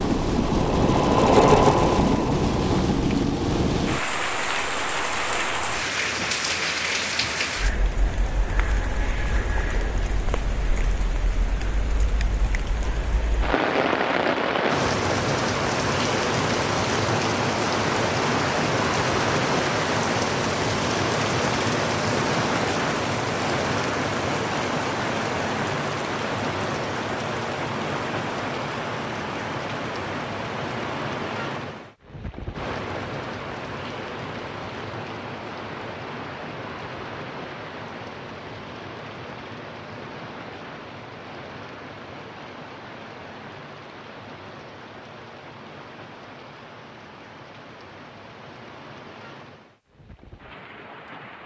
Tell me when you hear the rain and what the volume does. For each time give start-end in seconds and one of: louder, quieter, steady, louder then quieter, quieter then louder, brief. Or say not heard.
0.0-51.4 quieter.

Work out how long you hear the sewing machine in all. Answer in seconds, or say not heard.
3 s.